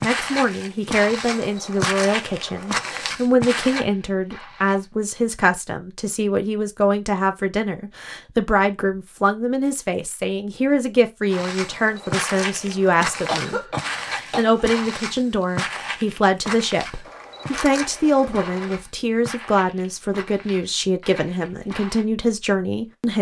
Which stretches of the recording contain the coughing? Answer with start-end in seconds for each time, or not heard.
13.2-14.7.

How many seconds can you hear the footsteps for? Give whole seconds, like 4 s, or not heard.
16 s.